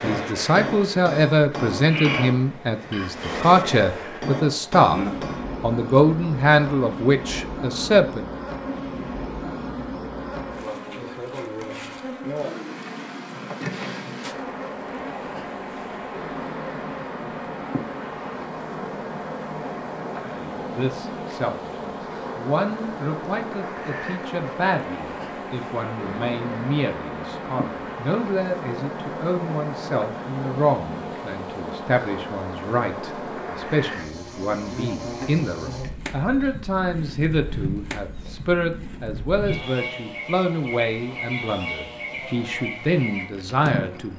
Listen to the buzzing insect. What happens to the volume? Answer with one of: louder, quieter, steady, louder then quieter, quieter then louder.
steady.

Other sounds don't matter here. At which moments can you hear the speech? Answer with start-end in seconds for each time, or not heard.
0.0-5.0, 5.6-8.2, 20.2-44.1.